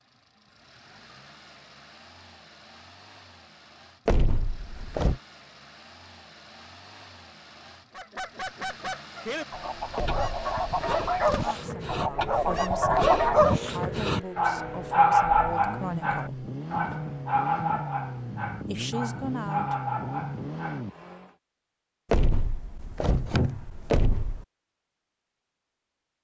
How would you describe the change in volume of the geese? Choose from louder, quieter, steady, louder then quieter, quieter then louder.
louder.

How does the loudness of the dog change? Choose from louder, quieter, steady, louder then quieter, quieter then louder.
louder then quieter.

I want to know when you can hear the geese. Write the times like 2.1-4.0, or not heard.
7.9-13.6.